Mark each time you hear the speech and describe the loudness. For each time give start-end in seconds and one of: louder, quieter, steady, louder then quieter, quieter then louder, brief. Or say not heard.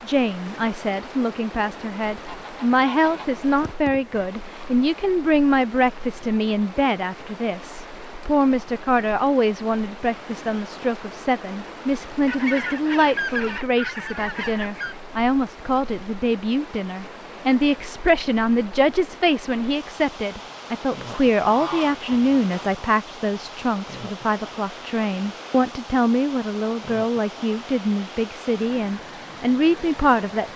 0.1-30.5 steady.